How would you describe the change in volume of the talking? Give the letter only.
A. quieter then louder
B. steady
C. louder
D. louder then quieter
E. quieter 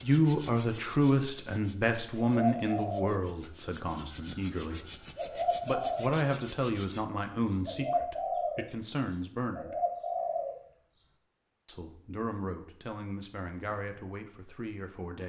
E.